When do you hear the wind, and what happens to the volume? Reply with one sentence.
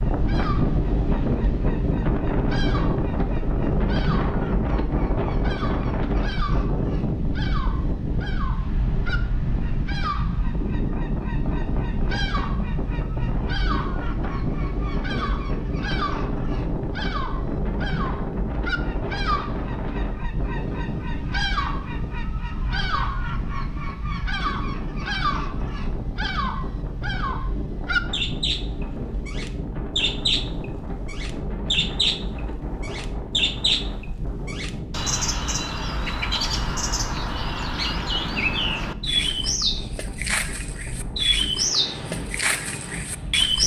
The wind can be heard from 0.0 to 43.6 s, getting quieter.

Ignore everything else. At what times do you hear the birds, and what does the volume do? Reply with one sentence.
You can hear the birds from 0.0 to 43.6 s, getting louder.